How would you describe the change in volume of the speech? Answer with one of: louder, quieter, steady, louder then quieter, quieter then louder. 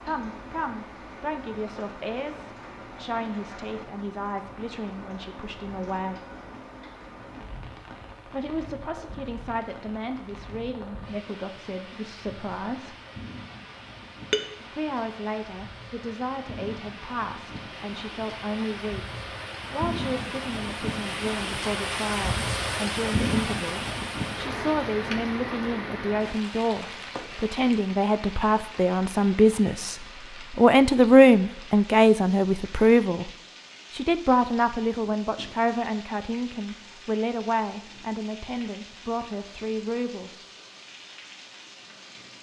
louder then quieter.